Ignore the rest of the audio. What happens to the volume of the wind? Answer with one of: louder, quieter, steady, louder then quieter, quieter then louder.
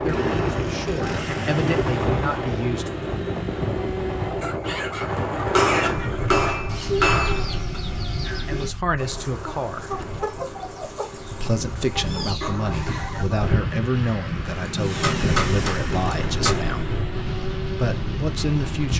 quieter then louder.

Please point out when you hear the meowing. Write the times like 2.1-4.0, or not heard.
12.0-13.3.